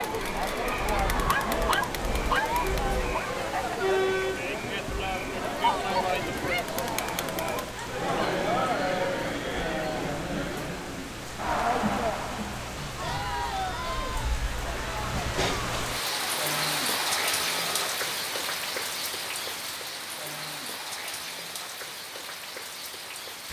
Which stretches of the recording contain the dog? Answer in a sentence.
The dog can be heard from 0.9 to 3.3 s.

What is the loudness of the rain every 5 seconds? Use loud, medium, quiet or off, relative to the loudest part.
medium, medium, medium, loud, medium.